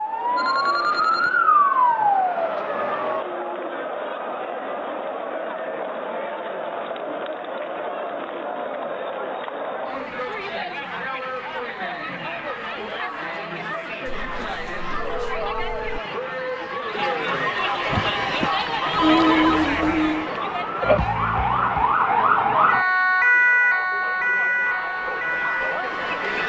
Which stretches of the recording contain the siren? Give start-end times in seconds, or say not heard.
0.0-3.2, 17.9-26.4.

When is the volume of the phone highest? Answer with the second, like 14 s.
19 s.